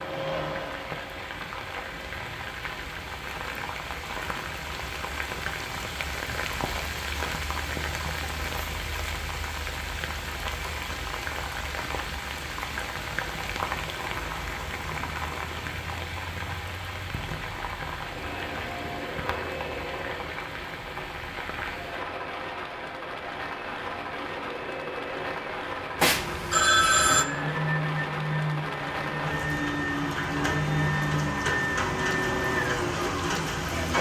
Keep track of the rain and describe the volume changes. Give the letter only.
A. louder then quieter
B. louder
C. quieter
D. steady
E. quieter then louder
D.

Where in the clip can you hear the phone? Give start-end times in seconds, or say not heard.
25.9-27.2.